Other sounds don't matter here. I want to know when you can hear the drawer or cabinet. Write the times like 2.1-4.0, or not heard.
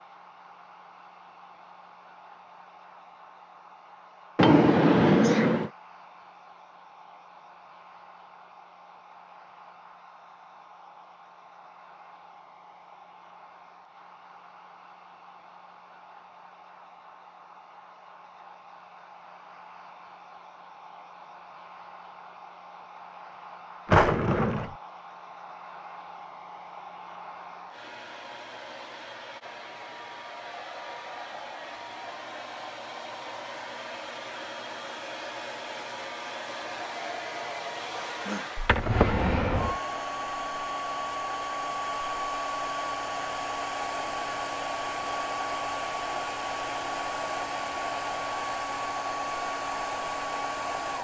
4.3-5.7, 23.9-24.7, 38.5-39.8.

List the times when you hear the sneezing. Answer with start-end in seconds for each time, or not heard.
5.0-5.6.